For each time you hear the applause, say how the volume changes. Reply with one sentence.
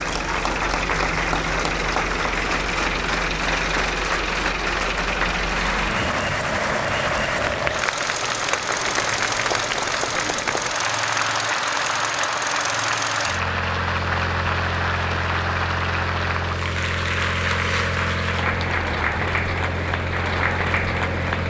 You can hear the applause from 0.0 to 21.4 s, at a steady volume.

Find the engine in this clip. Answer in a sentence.
The engine can be heard from 0.0 to 21.4 s.